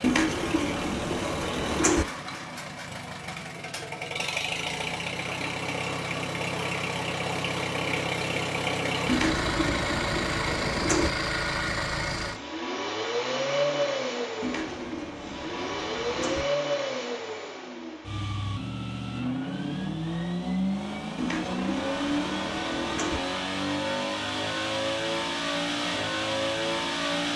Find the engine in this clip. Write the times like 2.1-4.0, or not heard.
0.0-27.3.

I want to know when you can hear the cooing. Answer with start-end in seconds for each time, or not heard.
0.0-2.0, 9.1-11.1, 14.4-16.4, 21.1-23.2.